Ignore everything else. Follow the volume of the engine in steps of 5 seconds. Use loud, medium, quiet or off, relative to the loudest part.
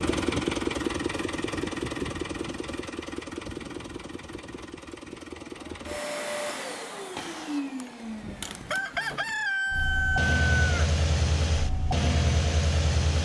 loud, medium, loud.